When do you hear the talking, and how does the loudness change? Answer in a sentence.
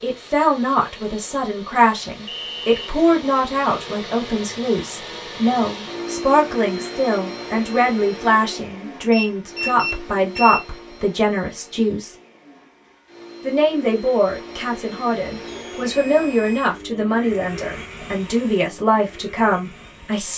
You can hear the talking from 0.0 to 12.2 s, at a steady volume; and from 13.4 to 20.3 s, at a steady volume.